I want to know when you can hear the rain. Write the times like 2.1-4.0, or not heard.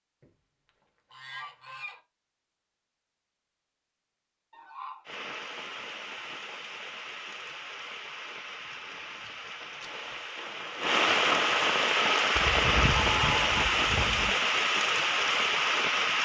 5.0-16.2.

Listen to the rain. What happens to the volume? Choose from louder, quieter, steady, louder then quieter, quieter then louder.
louder.